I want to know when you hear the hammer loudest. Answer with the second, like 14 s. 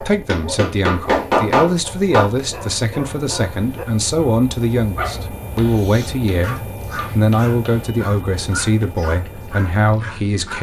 1 s.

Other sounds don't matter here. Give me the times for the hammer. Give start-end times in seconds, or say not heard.
0.2-2.3, 5.5-8.0.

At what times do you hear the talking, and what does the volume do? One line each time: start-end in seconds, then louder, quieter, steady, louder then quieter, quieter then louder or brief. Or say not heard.
0.0-10.5 steady.